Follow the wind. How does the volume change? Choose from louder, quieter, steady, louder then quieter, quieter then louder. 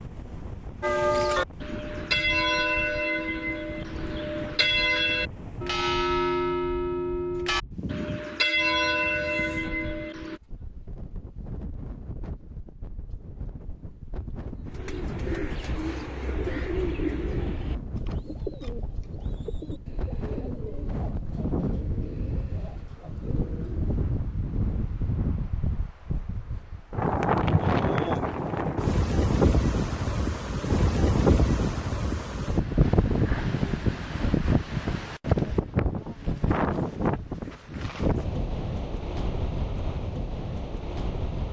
louder.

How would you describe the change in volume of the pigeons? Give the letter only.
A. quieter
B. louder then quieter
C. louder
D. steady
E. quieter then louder
A.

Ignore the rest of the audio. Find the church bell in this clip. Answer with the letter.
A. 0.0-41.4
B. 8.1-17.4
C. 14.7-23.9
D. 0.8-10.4
D.